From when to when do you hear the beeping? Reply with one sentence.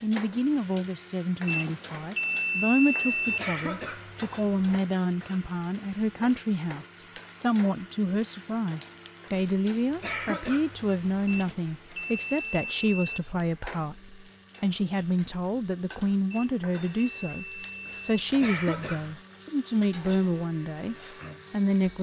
The beeping can be heard from 1.4 to 3.4 s, from 11.2 to 13.2 s and from 16.3 to 18.0 s.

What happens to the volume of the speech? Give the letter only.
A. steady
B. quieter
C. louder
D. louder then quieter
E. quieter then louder
A.